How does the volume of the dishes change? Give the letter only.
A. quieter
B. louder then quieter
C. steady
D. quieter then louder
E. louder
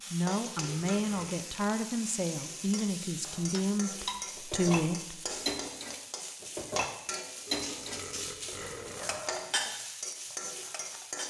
D.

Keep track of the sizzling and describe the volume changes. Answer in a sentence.
The volume of the sizzling stays about the same.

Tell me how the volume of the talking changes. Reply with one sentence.
The volume of the talking stays about the same.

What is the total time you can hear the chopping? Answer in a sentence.
You can't hear the chopping here.